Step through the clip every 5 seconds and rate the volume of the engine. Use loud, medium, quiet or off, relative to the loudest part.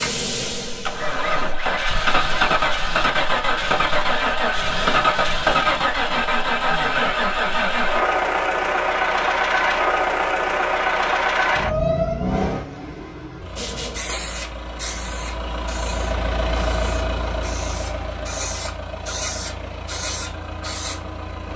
loud, loud, loud, medium, quiet.